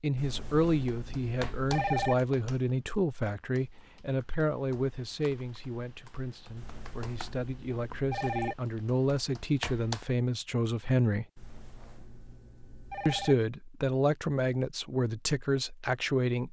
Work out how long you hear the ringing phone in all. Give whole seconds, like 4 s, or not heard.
6 s.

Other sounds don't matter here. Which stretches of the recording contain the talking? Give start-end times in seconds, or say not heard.
0.0-11.2, 13.1-16.4.